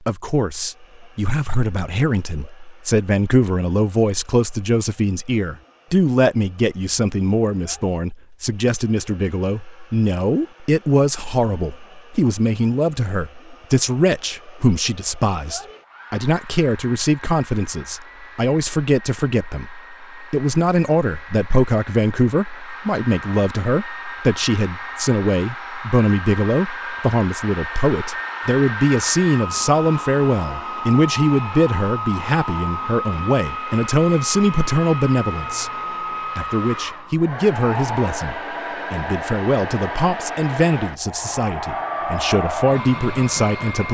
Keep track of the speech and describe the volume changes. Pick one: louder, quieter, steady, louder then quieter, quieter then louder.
steady.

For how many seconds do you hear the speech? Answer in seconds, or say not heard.
43 s.